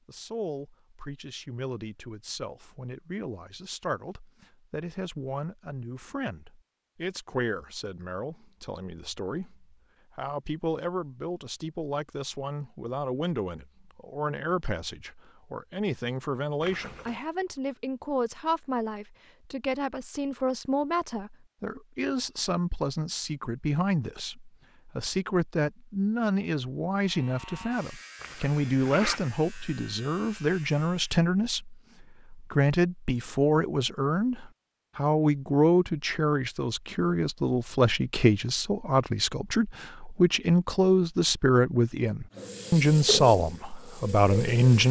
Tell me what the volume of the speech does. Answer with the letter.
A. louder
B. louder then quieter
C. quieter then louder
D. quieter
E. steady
A.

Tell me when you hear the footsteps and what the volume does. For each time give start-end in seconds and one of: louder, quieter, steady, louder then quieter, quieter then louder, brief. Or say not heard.
not heard.